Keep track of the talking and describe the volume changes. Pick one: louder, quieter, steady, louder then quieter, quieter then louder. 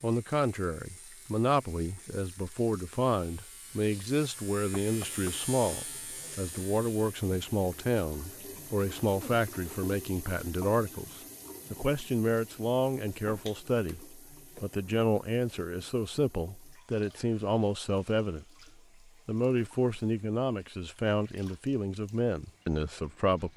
steady.